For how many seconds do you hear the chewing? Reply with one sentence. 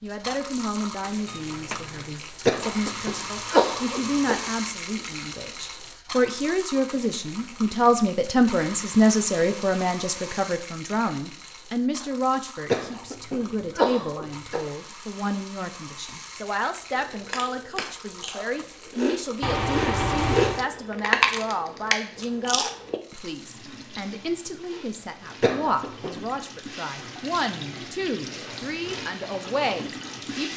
The chewing can be heard for 6 seconds in total.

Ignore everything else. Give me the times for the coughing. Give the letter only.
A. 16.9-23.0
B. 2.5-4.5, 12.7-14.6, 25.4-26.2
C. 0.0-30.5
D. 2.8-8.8
B.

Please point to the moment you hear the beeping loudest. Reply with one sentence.
The volume of the beeping peaks at 20 seconds.